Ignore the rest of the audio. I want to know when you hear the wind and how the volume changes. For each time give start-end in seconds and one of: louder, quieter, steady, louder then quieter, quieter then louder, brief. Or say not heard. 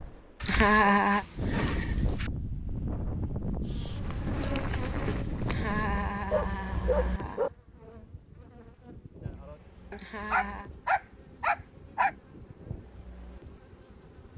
0.0-14.3 quieter.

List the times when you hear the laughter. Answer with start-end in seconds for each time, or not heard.
0.5-1.2, 5.5-7.5, 9.9-10.7.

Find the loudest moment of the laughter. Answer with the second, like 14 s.
1 s.